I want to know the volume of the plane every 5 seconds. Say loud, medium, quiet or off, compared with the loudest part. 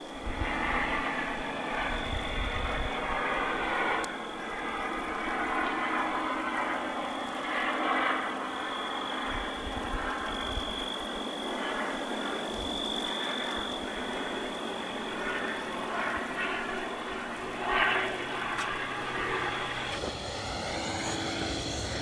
loud, loud, medium, loud, loud.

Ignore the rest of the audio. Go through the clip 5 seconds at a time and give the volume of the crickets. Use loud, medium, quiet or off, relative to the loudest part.
medium, medium, loud, medium, medium.